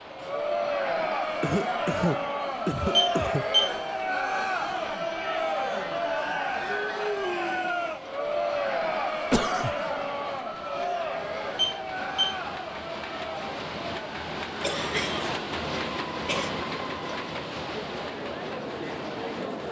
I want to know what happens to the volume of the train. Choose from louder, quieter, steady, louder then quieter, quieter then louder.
louder.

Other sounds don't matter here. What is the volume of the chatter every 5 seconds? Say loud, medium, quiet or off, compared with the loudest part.
loud, loud, medium, medium.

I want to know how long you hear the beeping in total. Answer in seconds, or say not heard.
2 s.